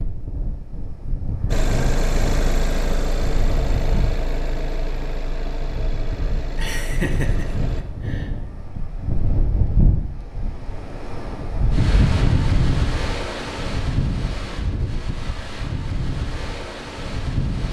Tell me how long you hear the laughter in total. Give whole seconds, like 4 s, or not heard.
2 s.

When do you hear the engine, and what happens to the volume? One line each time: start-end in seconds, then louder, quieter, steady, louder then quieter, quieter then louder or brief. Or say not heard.
1.4-7.8 quieter.